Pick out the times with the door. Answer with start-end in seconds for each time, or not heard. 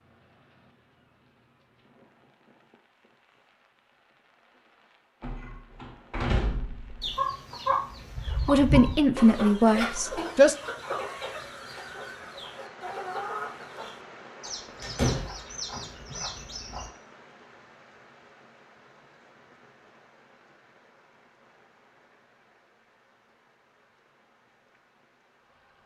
5.2-7.2, 14.8-15.3.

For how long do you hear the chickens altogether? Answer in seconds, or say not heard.
10 s.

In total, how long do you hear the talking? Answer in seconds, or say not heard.
2 s.